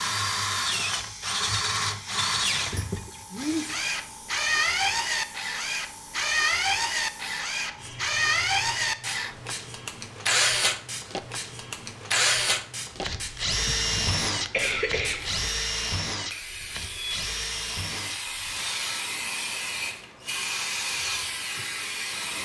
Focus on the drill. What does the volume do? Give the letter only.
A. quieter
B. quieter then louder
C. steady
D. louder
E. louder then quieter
A.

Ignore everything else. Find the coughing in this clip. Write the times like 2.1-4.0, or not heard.
13.7-15.4.